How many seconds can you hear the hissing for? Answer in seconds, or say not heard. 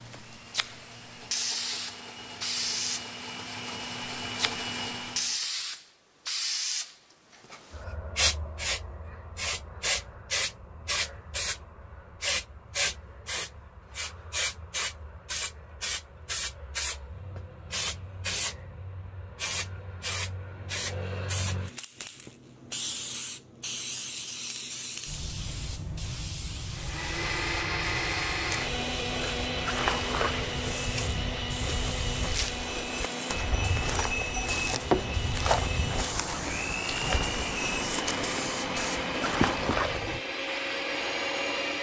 40 s.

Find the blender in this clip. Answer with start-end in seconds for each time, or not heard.
0.0-5.4, 26.7-41.7.